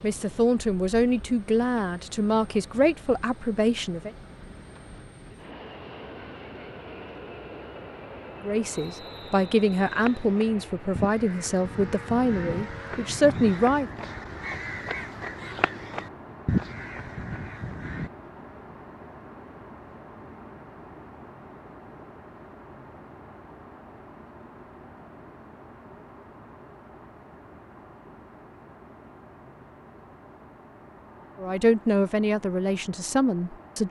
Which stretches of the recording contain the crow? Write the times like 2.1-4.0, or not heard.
9.8-18.1.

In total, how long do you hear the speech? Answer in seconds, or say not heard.
12 s.